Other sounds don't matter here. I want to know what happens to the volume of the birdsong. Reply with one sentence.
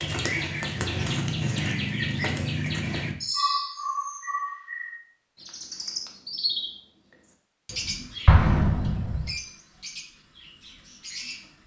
The volume of the birdsong goes down.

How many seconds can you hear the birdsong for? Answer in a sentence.
You can hear the birdsong for 11 seconds altogether.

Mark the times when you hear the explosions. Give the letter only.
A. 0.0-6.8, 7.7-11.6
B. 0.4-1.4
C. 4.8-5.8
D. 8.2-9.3
D.